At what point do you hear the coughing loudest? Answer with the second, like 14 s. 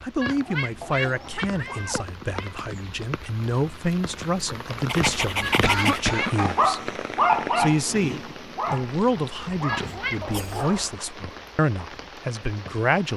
6 s.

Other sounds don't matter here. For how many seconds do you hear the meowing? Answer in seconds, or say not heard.
4 s.